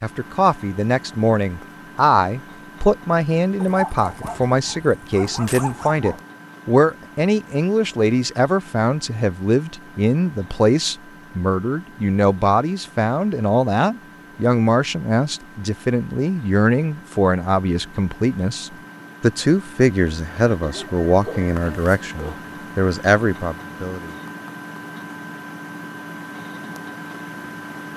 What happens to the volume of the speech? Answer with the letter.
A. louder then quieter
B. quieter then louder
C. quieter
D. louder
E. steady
E.